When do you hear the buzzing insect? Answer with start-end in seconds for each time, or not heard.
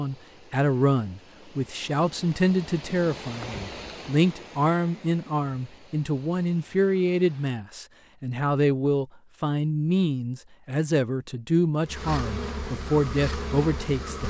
11.8-14.2.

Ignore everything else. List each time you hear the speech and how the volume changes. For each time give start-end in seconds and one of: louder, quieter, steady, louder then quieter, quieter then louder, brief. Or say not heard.
0.0-14.2 steady.